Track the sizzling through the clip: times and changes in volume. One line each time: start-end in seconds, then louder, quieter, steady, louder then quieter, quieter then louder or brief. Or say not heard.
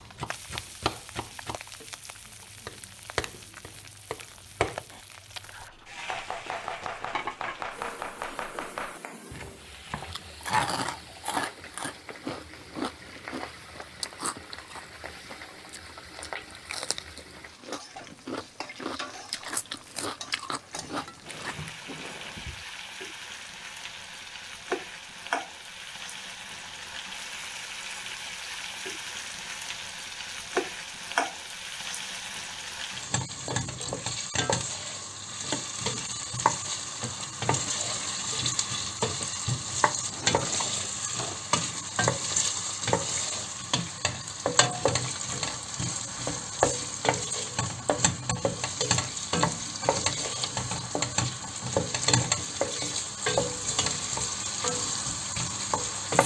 0.0-56.2 louder.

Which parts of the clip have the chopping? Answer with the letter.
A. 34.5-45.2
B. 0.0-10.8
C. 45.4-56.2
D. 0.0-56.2
B.